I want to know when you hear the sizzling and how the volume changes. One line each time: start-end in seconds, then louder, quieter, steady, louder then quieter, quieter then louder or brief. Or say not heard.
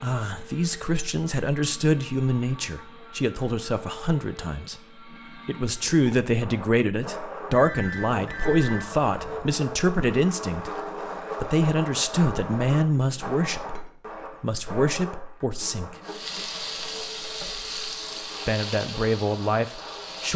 16.0-20.3 quieter.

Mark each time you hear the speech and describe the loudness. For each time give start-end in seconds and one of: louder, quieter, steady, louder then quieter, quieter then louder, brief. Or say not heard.
0.0-16.0 steady
18.4-20.3 brief.